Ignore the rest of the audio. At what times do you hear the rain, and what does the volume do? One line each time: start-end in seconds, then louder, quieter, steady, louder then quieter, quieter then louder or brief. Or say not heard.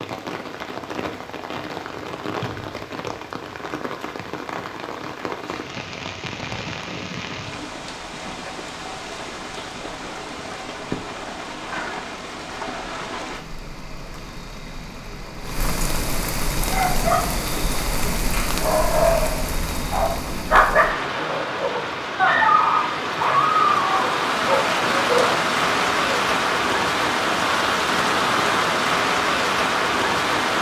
0.0-30.5 louder.